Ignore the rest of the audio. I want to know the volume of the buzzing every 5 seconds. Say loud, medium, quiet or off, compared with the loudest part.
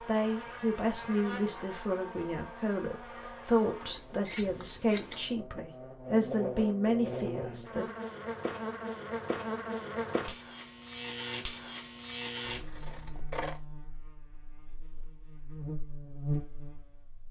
medium, loud, loud, loud.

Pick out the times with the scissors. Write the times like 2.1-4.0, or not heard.
3.8-5.3, 12.4-13.6.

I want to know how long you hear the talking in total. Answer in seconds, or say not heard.
8 s.